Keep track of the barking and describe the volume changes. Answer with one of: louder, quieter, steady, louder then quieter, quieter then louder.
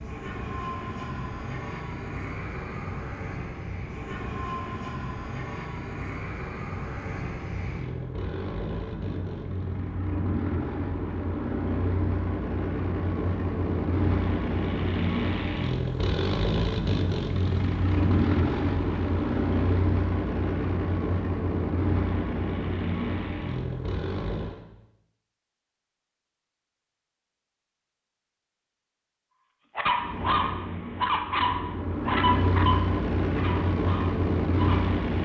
quieter.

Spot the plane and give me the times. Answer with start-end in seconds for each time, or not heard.
0.0-24.6, 29.9-35.2.